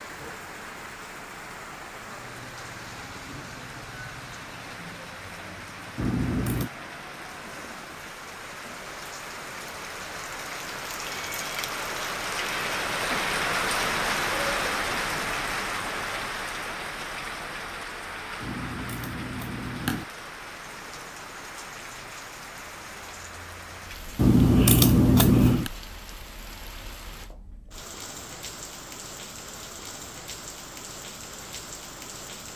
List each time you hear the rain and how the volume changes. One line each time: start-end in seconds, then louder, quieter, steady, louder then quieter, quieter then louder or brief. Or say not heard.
0.0-32.5 louder then quieter.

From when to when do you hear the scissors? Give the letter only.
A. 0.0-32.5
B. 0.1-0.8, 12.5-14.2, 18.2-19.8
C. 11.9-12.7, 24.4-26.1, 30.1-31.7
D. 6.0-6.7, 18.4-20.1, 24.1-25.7
D.